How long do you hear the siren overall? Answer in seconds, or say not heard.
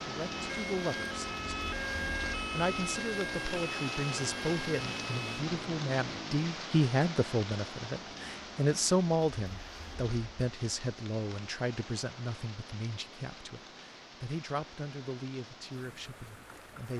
5 s.